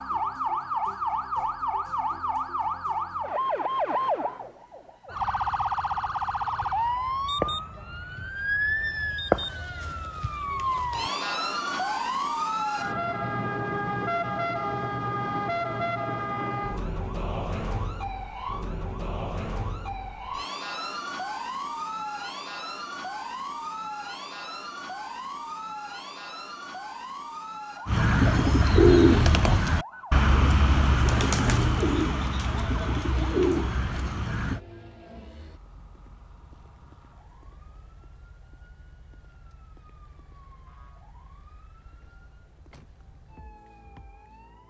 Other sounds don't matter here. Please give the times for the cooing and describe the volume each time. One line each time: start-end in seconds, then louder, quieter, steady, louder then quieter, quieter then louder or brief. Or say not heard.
27.9-34.6 quieter.